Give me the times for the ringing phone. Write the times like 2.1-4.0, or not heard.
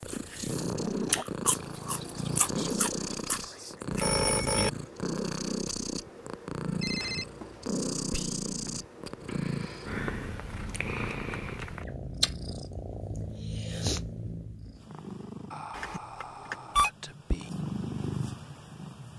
3.9-4.7, 6.8-7.5, 15.7-16.9.